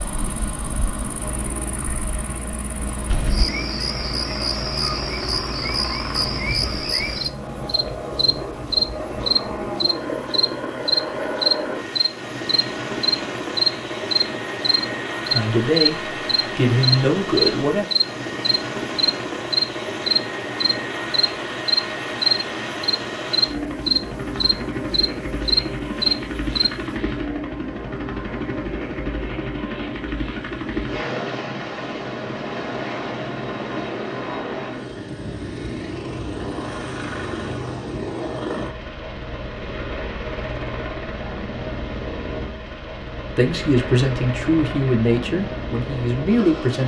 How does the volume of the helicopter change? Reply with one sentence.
The volume of the helicopter stays about the same.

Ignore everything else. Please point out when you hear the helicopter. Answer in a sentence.
You can hear the helicopter from 0.0 to 46.8 s.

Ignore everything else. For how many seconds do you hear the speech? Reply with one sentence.
The speech can be heard for 6 seconds in total.